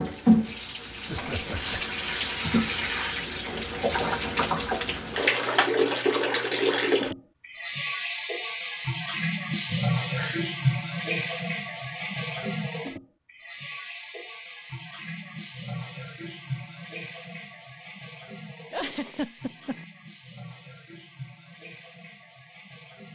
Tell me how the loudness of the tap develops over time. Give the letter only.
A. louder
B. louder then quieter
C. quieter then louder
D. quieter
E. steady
D.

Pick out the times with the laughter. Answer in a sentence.
You can hear the laughter from 1.1 to 1.8 s, from 9.5 to 10.4 s and from 18.7 to 19.9 s.